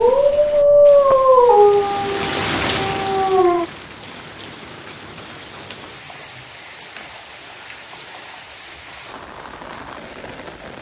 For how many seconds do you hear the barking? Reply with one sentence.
You can hear the barking for 4 seconds altogether.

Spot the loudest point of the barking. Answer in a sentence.
The volume of the barking peaks at 1 second.